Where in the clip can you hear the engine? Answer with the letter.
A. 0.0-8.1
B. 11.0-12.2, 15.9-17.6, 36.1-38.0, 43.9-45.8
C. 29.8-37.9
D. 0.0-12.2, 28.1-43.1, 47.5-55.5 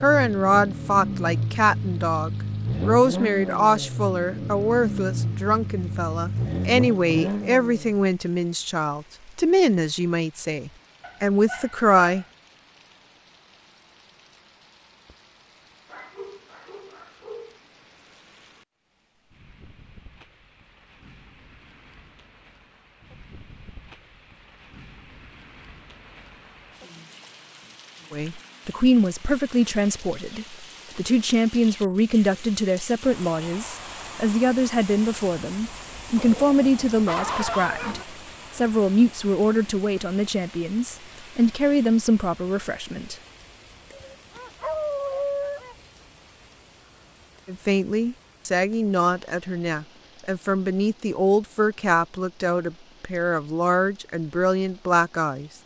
A.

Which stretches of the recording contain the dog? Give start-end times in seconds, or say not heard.
11.0-12.2, 15.9-17.6, 36.1-38.0, 43.9-45.8.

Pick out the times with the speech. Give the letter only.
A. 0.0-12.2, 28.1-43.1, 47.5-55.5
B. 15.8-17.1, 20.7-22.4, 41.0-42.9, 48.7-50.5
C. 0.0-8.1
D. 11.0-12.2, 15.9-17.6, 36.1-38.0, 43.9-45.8
A.